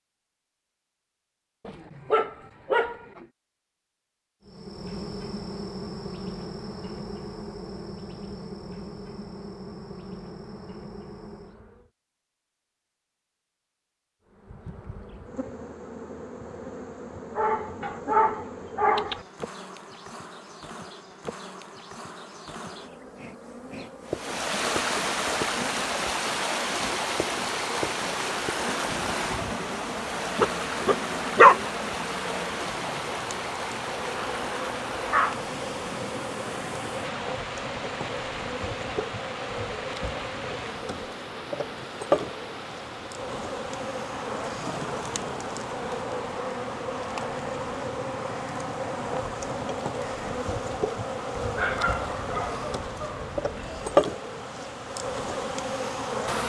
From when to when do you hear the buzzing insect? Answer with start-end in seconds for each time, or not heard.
4.5-11.9, 14.2-56.4.